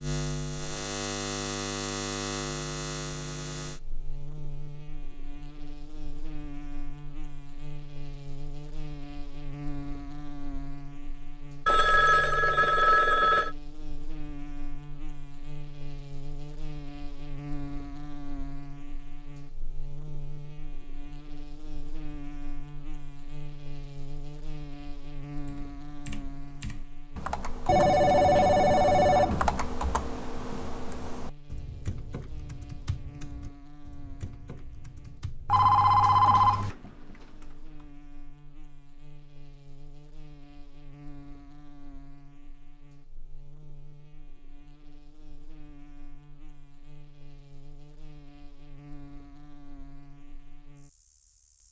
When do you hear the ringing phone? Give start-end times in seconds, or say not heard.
11.7-13.6, 27.6-29.5, 35.5-36.7.